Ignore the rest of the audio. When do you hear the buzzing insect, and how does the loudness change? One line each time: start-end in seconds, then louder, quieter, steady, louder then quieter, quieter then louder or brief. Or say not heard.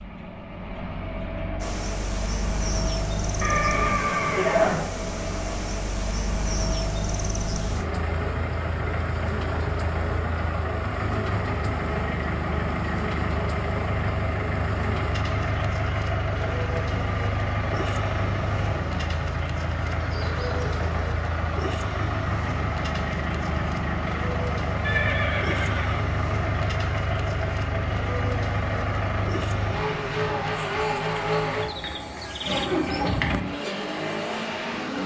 1.6-35.0 steady.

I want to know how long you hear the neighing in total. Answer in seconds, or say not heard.
4 s.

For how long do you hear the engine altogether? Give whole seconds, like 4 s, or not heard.
35 s.